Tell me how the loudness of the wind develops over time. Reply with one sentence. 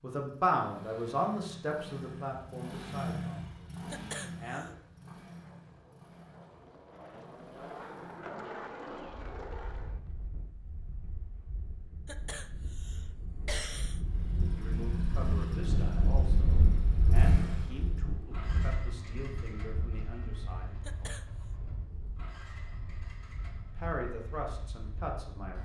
The volume of the wind goes up, then down.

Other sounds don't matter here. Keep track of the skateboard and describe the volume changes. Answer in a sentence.
The loudness of the skateboard goes up.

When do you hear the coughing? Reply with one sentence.
The coughing can be heard from 3.9 to 4.7 s, from 12.1 to 14.0 s and from 20.8 to 21.4 s.